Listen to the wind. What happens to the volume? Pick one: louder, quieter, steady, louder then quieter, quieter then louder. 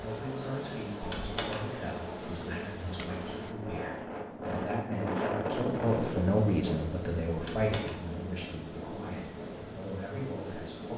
louder then quieter.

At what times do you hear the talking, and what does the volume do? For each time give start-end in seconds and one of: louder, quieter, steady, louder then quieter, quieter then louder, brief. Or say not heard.
0.0-10.9 louder then quieter.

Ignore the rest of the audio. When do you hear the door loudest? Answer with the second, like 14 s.
1 s.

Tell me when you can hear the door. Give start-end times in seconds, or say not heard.
1.0-1.6, 7.3-8.0.